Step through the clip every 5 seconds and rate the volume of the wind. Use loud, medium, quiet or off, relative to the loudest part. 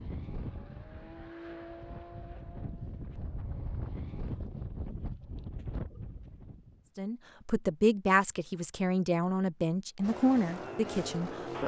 loud, loud, off.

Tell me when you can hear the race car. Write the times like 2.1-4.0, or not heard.
0.0-4.4, 10.0-11.6.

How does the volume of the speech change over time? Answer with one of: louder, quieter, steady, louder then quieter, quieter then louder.
quieter.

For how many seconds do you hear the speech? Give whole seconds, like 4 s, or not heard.
5 s.